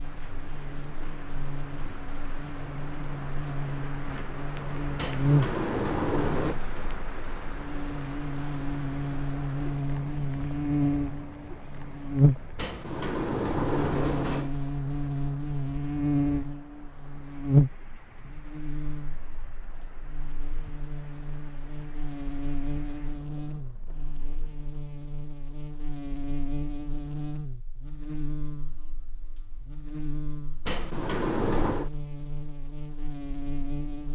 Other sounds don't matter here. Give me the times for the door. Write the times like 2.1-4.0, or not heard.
5.0-6.5, 12.6-14.5, 30.6-31.9.